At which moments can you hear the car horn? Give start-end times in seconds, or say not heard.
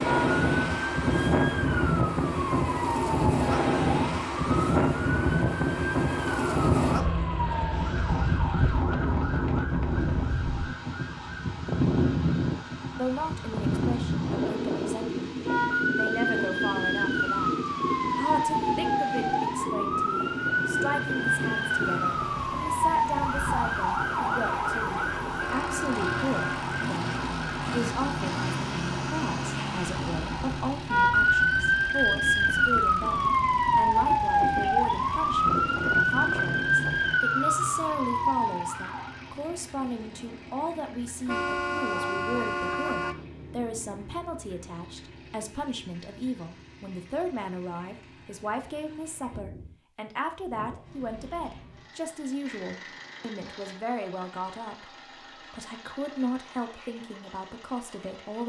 25.4-26.5, 41.2-43.2.